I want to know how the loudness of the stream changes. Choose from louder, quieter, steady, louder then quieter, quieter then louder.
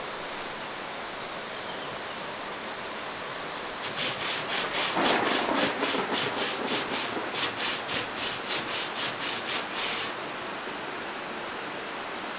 steady.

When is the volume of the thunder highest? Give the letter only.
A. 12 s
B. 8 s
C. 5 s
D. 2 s
C.